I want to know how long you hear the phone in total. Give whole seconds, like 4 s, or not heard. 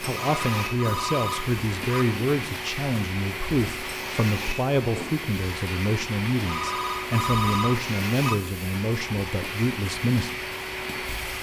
4 s.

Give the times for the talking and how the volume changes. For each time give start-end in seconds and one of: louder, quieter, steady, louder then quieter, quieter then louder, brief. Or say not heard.
0.0-10.3 steady.